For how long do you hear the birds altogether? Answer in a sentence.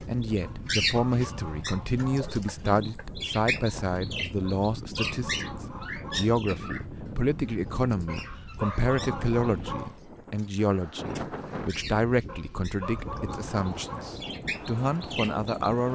The birds can be heard for 16 seconds in total.